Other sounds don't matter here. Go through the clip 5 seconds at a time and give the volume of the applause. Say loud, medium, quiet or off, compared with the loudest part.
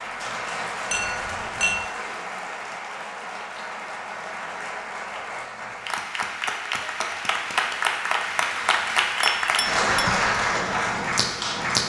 medium, loud, loud.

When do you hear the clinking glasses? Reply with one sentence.
The clinking glasses can be heard from 0.9 to 1.9 s and from 9.2 to 9.8 s.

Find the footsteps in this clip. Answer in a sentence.
The footsteps can't be heard in this clip.